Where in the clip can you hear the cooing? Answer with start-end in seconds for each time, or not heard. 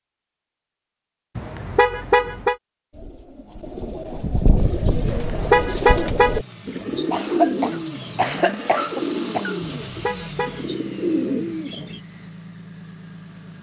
2.9-12.0.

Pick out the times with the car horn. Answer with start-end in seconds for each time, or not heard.
1.4-2.5, 5.0-6.4, 9.8-10.7.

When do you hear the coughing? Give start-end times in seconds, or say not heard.
7.1-9.6.